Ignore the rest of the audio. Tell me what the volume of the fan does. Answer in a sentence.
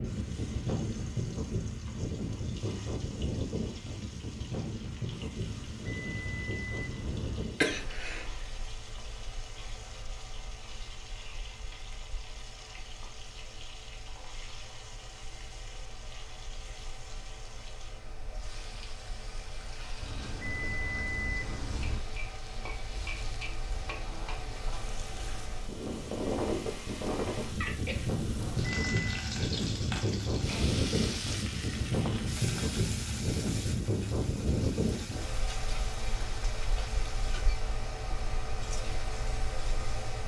The volume of the fan goes down, then up.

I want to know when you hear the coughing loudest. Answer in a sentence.
The volume of the coughing peaks at 8 seconds.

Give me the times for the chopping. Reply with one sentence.
You can't hear the chopping here.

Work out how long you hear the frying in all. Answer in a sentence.
You can hear the frying for 40 seconds altogether.